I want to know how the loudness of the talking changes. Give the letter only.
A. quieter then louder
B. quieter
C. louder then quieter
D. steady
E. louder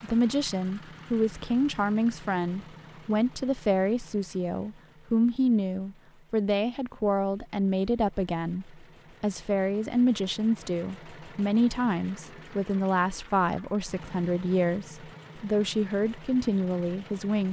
D.